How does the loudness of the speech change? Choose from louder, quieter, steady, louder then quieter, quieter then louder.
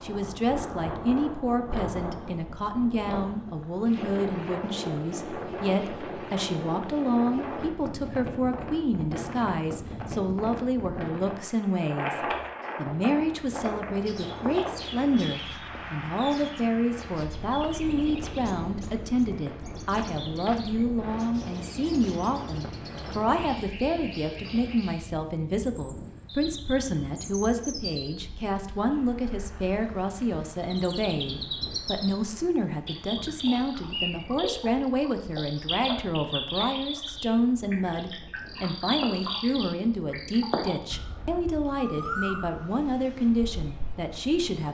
steady.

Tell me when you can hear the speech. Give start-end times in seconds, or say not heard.
0.0-44.6.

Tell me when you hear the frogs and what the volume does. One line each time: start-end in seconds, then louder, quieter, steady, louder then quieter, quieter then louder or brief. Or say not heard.
not heard.